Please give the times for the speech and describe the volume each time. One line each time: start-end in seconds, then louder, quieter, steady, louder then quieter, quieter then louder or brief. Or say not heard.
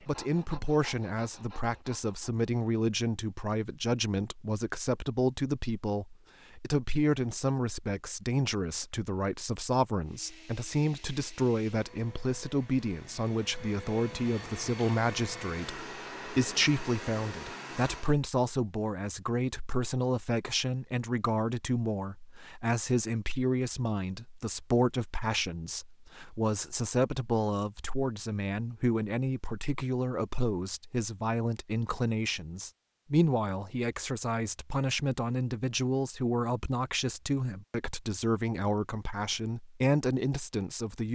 0.1-41.0 steady.